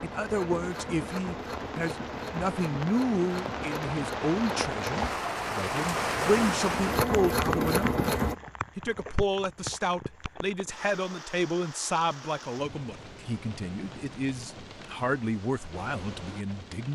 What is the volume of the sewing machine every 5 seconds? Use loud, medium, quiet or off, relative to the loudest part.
medium, loud, off, off.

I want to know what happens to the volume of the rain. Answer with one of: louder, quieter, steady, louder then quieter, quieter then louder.
louder then quieter.